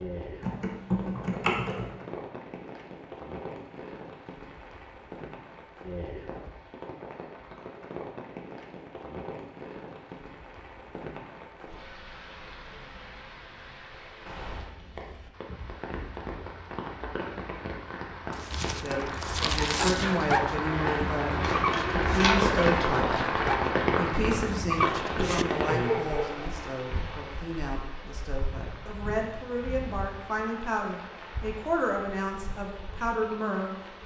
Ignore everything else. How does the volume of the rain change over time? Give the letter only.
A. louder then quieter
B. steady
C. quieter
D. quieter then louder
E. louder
A.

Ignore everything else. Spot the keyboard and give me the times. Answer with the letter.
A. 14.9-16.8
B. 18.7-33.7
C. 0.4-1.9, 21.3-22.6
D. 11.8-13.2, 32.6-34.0
C.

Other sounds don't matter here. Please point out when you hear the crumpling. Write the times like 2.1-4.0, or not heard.
18.3-20.1.